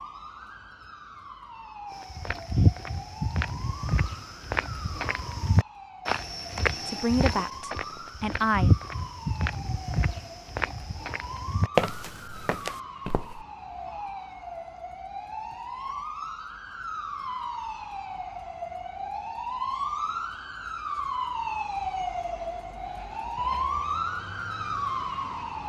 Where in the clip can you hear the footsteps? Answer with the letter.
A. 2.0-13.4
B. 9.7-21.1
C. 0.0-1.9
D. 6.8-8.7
A.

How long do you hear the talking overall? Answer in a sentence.
The talking can be heard for 2 seconds in total.